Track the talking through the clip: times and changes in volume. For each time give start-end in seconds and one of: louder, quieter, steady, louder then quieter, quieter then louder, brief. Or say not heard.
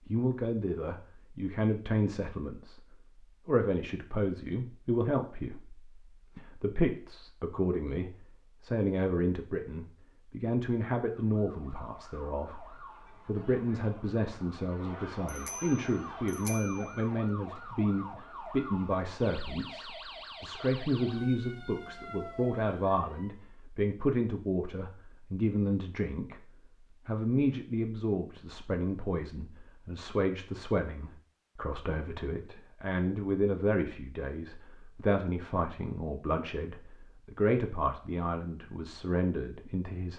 0.1-26.4 steady
27.1-40.1 steady.